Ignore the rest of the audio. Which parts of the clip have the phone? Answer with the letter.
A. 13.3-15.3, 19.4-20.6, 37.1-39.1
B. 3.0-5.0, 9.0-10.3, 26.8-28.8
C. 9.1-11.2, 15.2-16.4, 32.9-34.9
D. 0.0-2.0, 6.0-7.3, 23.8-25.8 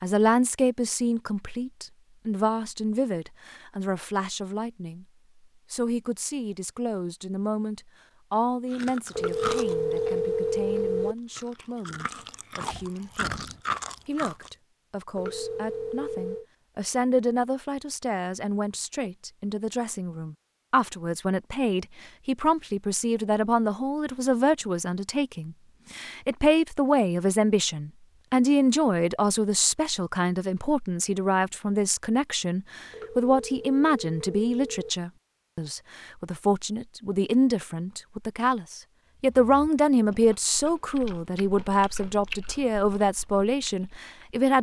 C.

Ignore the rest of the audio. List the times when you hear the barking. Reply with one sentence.
The barking can't be heard in this clip.